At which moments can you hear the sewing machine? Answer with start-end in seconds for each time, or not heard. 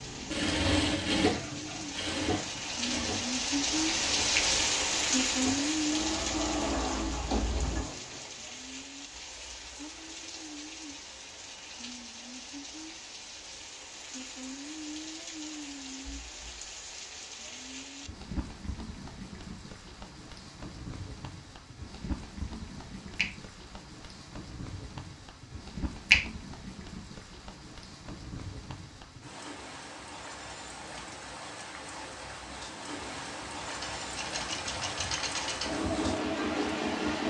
0.0-8.3, 33.8-37.2.